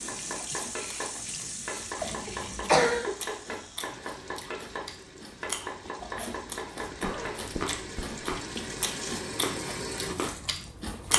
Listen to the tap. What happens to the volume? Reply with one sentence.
The volume of the tap goes down, then up.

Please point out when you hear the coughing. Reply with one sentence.
You can hear the coughing from 2.0 to 3.1 s and from 7.0 to 8.1 s.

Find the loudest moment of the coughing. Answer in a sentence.
The volume of the coughing peaks at 3 seconds.